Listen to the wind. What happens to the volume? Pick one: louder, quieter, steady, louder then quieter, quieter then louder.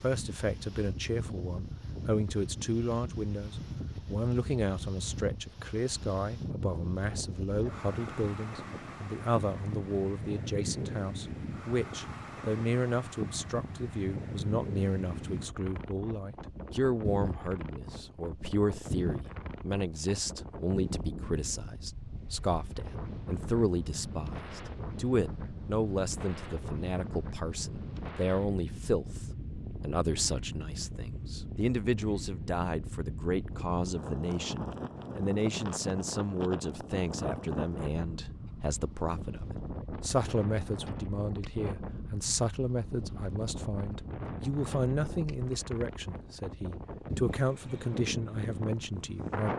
steady.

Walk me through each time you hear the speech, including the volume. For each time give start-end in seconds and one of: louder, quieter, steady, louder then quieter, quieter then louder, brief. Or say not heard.
0.0-49.5 steady.